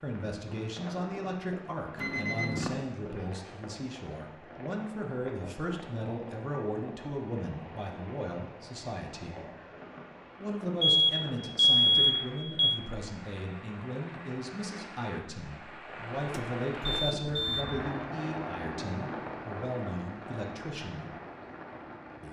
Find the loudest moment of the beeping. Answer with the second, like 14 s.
12 s.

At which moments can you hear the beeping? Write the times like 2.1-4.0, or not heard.
1.9-2.8, 10.8-12.8, 16.2-17.6.